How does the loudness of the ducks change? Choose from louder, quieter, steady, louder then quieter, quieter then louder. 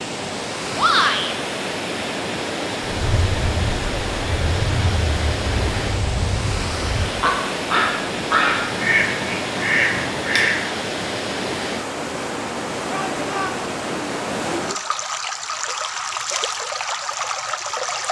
louder.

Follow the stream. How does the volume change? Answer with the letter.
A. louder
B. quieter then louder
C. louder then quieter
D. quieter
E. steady
E.